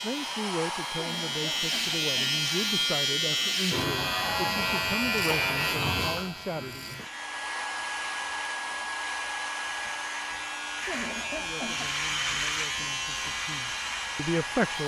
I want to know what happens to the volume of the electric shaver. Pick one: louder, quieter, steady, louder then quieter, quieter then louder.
quieter then louder.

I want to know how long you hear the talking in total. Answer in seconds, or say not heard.
10 s.